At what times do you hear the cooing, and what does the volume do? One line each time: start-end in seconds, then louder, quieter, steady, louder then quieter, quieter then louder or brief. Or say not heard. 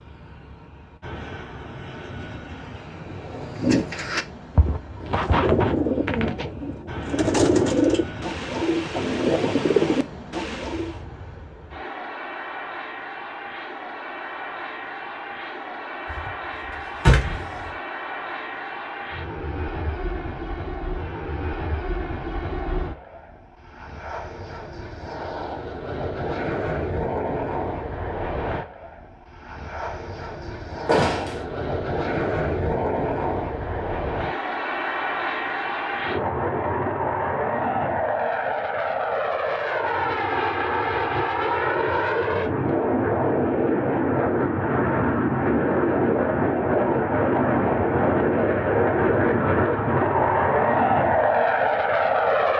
3.0-10.9 steady.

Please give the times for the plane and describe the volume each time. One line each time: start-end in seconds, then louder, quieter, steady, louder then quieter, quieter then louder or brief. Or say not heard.
0.0-52.5 louder.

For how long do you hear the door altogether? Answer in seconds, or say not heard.
2 s.